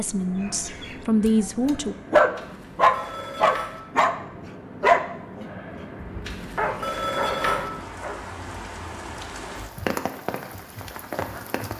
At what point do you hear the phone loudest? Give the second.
7 s.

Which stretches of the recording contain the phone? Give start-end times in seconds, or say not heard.
2.4-3.8, 6.2-7.7.